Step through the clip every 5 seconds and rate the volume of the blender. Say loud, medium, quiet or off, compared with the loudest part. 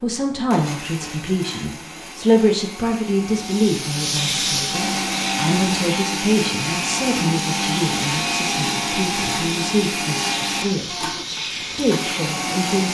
medium, loud, loud.